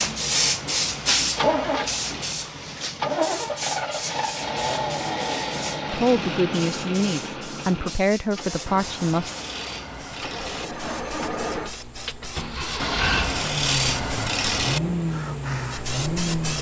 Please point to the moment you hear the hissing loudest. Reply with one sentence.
The loudest moment of the hissing is at 1 second.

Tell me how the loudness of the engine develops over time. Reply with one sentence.
The loudness of the engine goes down, then up.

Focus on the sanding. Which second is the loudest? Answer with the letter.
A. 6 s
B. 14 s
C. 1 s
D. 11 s
B.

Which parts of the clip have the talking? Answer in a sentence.
The talking can be heard from 5.8 to 9.3 s.